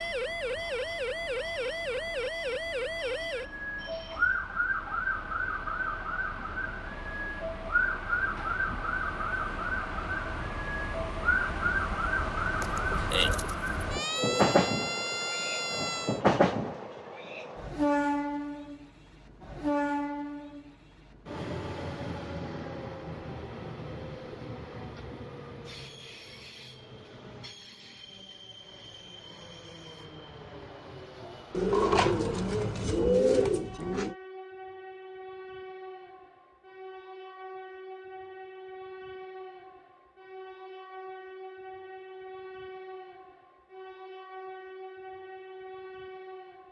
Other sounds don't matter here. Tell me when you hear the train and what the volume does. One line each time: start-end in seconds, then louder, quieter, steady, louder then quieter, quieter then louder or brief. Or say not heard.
0.0-46.6 louder then quieter.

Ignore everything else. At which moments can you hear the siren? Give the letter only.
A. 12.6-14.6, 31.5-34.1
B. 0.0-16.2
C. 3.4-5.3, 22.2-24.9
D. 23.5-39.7
B.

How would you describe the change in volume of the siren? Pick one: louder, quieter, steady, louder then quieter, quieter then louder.
steady.